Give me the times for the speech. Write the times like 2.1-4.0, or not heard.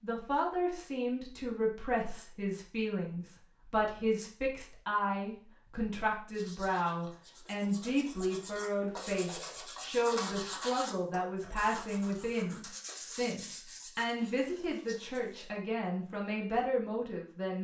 0.0-17.5.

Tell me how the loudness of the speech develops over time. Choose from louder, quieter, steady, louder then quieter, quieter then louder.
steady.